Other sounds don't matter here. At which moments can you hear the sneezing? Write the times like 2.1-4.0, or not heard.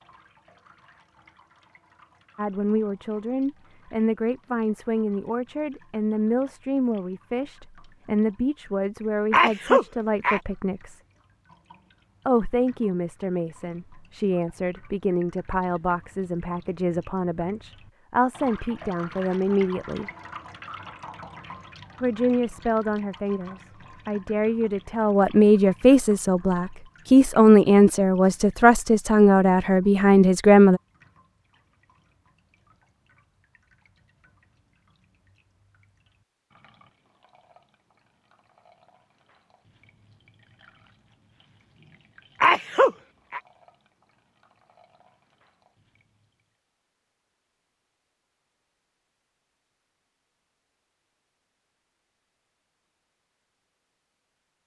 9.3-10.4, 42.4-43.4.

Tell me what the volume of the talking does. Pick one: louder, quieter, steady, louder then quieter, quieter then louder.
louder.